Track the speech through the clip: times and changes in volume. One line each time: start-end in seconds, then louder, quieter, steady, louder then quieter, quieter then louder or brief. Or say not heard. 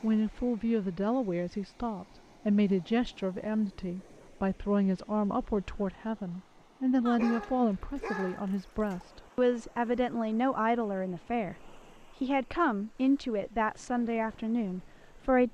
0.0-15.4 steady.